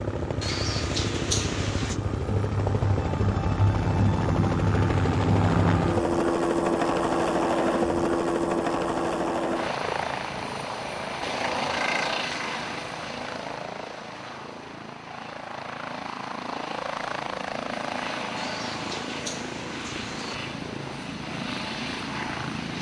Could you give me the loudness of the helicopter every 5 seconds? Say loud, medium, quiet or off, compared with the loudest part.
loud, loud, medium, medium, medium.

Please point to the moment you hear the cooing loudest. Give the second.
1 s.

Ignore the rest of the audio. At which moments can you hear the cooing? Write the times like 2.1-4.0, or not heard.
0.4-2.0, 18.4-20.4.